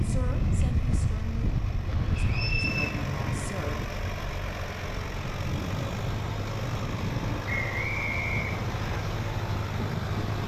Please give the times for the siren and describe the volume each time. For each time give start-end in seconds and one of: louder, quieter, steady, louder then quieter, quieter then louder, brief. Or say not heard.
not heard.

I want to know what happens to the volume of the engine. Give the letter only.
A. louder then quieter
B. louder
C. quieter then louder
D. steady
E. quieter
B.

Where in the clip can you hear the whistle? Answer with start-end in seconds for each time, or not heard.
2.1-2.9, 7.5-9.0.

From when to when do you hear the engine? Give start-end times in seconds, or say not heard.
0.0-10.4.